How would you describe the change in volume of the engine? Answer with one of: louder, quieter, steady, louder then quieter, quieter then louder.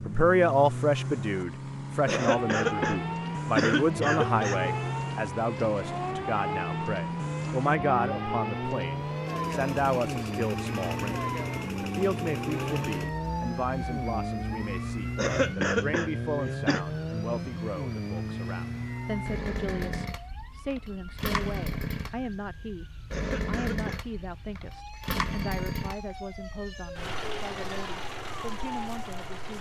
steady.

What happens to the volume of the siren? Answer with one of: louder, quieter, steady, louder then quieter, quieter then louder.
quieter.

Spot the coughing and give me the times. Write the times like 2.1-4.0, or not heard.
2.0-4.7, 15.2-16.9, 23.1-24.1.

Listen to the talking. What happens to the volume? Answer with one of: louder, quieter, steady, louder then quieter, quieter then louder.
quieter.